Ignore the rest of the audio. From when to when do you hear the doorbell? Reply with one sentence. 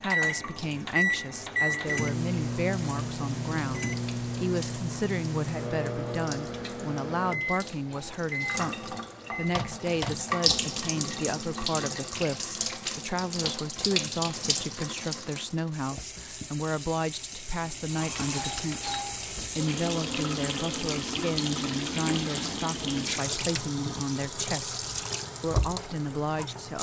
The doorbell can be heard from 7.7 to 8.7 s and from 18.1 to 19.2 s.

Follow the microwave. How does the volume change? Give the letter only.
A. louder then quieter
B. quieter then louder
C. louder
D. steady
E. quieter
E.